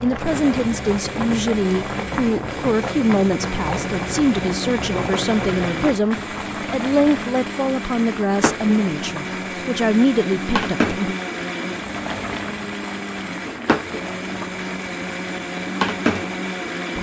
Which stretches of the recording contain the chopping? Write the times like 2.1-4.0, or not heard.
not heard.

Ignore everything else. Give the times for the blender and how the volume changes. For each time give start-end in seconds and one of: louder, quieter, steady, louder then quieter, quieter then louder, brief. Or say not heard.
0.1-16.9 steady.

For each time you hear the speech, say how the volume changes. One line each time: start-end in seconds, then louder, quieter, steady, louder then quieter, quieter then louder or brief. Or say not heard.
0.0-11.2 steady.